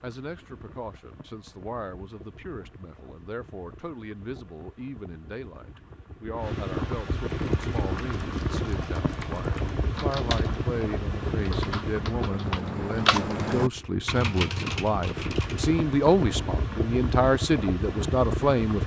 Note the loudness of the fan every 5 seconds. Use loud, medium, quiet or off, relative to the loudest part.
quiet, loud, loud, loud.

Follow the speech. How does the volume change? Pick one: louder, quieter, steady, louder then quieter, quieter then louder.
louder.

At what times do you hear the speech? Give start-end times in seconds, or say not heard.
0.0-18.8.